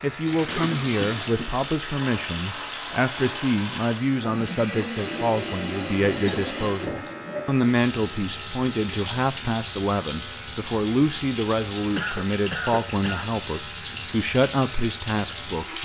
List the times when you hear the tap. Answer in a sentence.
You can hear the tap from 0.0 to 15.8 s.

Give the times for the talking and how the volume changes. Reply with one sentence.
You can hear the talking from 0.0 to 15.8 s, at a steady volume.